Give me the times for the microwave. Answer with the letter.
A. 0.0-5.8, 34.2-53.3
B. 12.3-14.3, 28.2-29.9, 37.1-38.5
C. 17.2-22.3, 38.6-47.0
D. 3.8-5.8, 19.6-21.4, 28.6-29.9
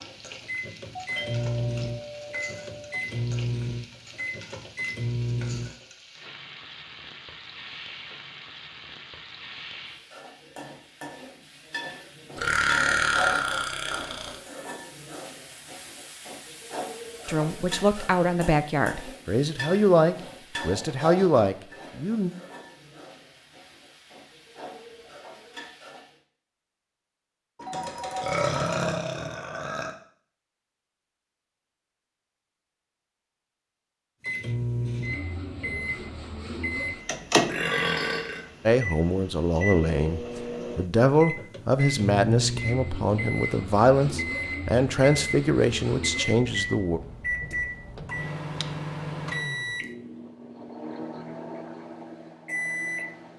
A.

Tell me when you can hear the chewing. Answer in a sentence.
The chewing can't be heard in this clip.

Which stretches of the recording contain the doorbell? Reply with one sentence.
The doorbell can be heard from 0.9 to 3.0 s and from 27.6 to 28.9 s.